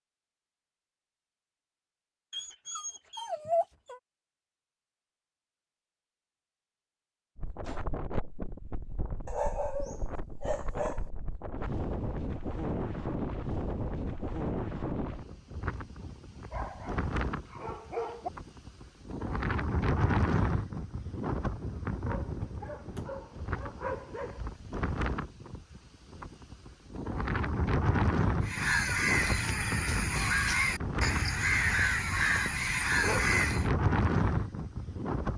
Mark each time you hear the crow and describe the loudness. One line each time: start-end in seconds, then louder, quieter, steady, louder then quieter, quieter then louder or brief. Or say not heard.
28.4-33.7 steady.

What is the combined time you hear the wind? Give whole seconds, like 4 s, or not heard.
28 s.